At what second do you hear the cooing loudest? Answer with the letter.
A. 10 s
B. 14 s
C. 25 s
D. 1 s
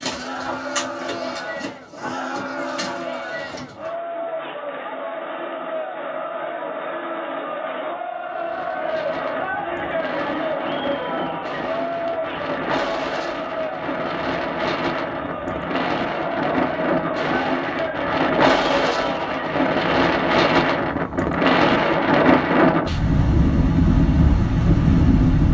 D.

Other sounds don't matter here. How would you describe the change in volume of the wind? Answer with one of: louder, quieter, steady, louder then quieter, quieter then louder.
louder.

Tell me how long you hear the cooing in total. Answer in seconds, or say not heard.
4 s.